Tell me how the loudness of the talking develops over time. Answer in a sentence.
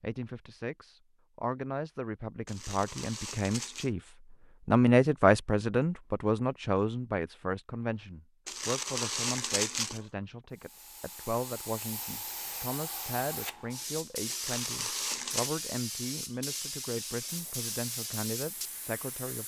The loudness of the talking goes up, then down.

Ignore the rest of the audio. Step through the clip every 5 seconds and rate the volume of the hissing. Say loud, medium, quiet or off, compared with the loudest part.
off, off, loud, loud.